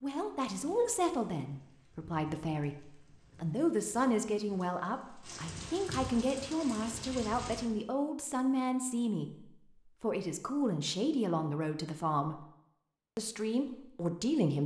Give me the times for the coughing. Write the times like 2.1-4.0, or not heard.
not heard.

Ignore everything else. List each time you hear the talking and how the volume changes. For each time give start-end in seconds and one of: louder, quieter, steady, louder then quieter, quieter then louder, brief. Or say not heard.
0.0-12.4 steady
13.2-14.6 brief.